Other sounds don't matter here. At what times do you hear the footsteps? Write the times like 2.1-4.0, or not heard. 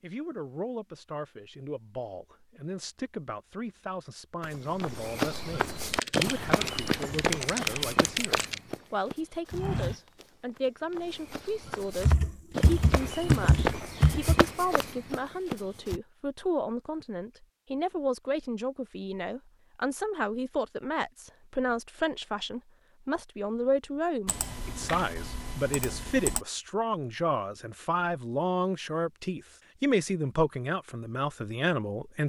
4.4-16.0.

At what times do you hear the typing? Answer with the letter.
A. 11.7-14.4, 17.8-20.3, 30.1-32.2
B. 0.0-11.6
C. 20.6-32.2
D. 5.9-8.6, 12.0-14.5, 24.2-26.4
D.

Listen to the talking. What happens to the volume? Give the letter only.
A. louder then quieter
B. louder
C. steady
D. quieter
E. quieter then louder
B.